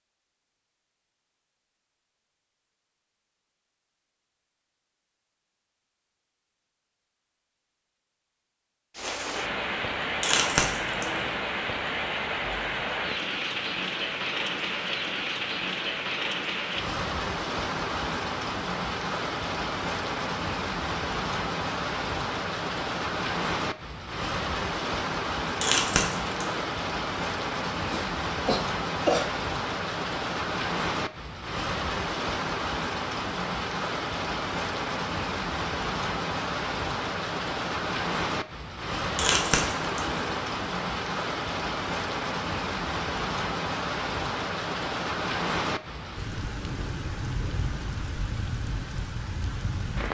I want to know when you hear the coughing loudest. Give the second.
29 s.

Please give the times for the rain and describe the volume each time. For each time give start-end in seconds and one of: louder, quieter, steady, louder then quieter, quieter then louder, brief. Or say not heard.
8.9-50.0 steady.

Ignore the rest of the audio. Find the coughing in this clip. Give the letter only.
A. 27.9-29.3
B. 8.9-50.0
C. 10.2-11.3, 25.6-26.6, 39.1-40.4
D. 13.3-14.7
A.